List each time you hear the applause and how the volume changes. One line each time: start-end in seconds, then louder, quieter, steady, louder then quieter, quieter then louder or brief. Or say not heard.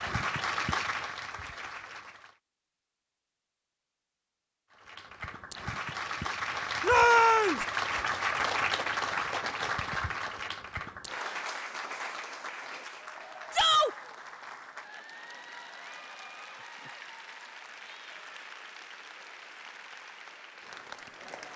0.0-2.4 brief
4.7-21.5 quieter.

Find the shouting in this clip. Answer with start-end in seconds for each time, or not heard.
6.8-7.6, 13.5-13.9.